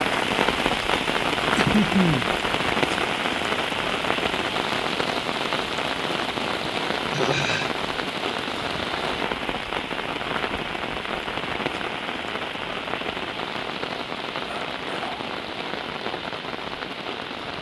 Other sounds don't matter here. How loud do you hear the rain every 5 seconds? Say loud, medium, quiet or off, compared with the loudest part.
loud, loud, medium, medium.